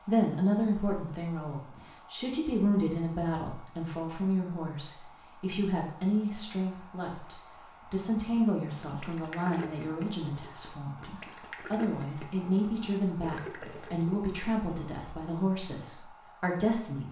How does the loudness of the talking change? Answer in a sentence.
The loudness of the talking stays about the same.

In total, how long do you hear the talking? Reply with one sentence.
You can hear the talking for 17 seconds altogether.